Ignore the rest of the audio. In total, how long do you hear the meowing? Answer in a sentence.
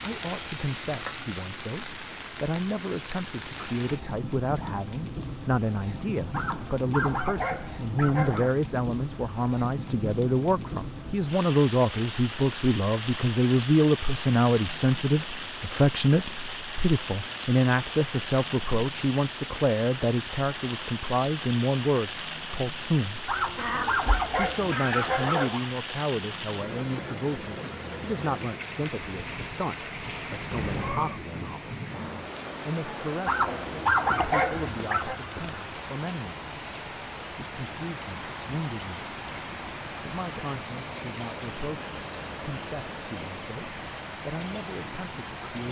You can hear the meowing for 3 seconds altogether.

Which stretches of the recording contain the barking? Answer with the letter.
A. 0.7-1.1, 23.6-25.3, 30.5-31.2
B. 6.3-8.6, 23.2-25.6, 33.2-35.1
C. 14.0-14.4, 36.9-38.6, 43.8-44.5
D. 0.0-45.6
B.